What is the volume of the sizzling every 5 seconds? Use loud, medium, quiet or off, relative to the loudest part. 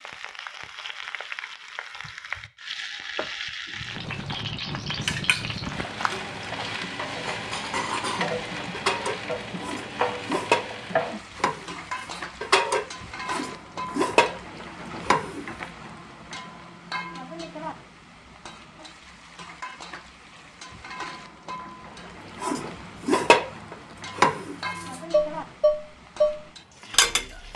loud, loud, loud, medium, medium, medium.